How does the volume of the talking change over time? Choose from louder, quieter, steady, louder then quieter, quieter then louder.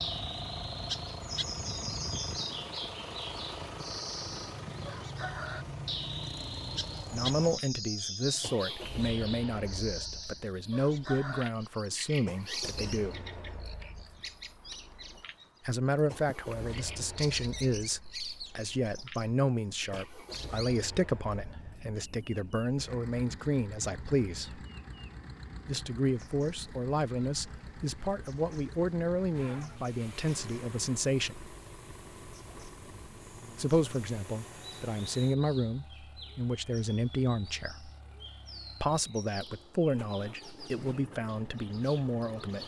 steady.